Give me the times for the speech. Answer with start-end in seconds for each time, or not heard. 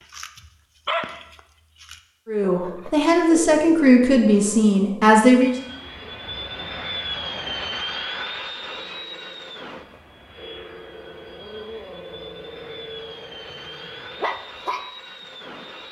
2.2-5.5.